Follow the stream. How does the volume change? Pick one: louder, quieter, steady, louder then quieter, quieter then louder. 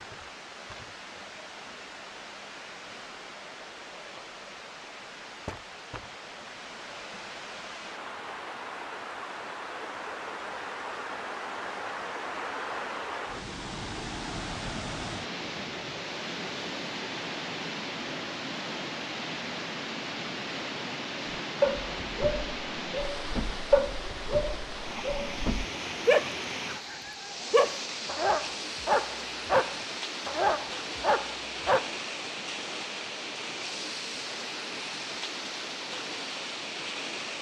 louder.